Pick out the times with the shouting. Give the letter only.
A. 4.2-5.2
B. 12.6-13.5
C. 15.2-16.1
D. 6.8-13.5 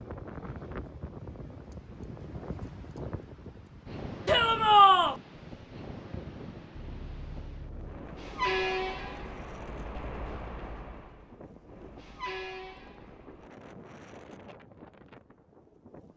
A.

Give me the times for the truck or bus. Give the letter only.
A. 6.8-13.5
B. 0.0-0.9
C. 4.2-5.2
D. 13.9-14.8
A.